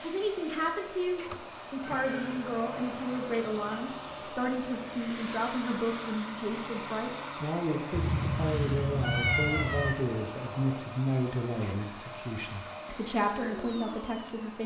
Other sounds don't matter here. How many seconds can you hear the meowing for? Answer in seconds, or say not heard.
4 s.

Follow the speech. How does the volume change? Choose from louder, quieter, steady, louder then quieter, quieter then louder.
steady.